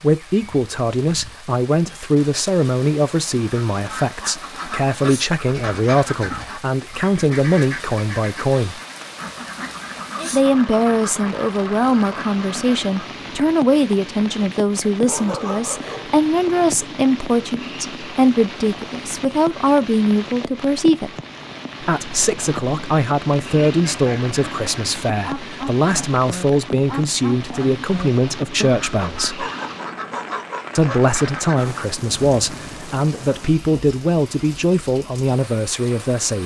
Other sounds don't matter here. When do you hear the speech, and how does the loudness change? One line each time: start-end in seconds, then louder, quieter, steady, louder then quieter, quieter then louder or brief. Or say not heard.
0.0-8.8 steady
10.3-21.1 steady
21.8-29.4 steady
30.8-36.4 steady.